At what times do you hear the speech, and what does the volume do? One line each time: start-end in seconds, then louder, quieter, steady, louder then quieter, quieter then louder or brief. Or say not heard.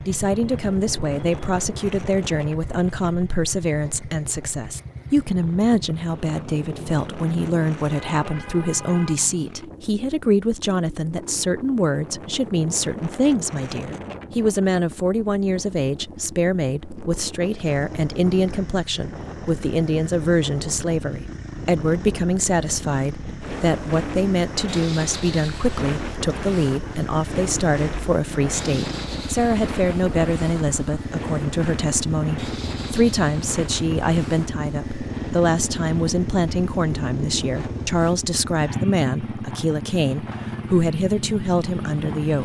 0.1-42.4 steady.